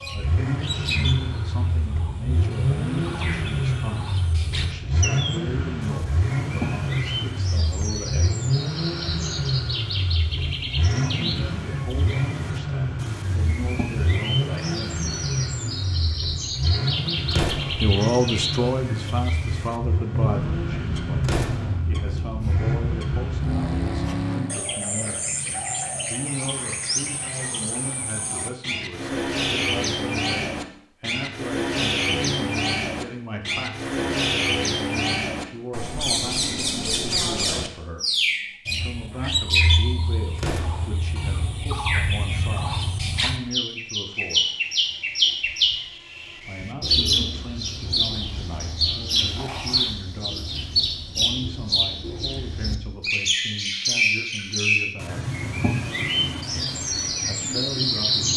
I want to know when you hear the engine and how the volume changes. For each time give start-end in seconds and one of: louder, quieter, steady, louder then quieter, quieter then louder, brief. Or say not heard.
0.0-24.6 steady.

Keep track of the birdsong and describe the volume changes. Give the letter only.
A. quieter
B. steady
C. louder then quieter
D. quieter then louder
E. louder
E.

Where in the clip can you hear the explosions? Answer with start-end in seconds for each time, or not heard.
17.3-17.9, 21.2-21.8, 40.4-40.9.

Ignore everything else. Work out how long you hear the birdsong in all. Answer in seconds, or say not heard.
58 s.